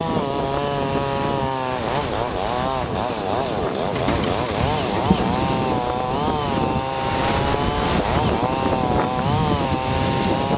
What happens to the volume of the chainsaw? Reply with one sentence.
The volume of the chainsaw stays about the same.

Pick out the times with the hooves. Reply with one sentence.
The hooves can be heard from 3.9 to 5.6 s.